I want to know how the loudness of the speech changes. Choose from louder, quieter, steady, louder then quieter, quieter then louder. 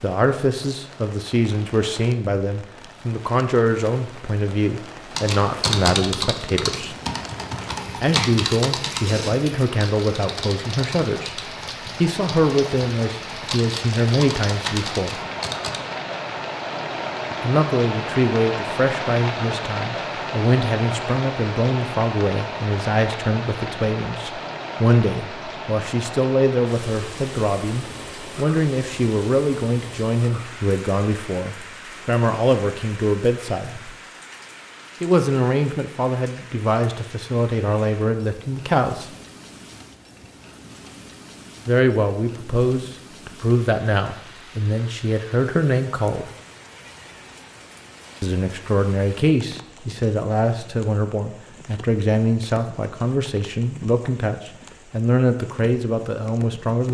steady.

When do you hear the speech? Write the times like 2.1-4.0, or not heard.
0.0-7.0, 8.0-15.2, 17.4-33.9, 35.0-39.1, 41.6-46.3, 48.2-56.9.